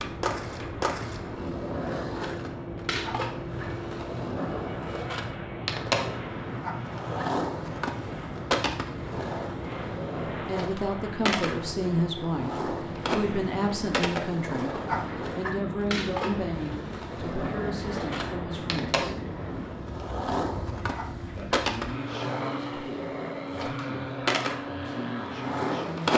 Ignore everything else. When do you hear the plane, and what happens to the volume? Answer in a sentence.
The plane can be heard from 0.0 to 26.1 s, at a steady volume.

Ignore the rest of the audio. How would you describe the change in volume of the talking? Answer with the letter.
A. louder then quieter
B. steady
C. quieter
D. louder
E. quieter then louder
C.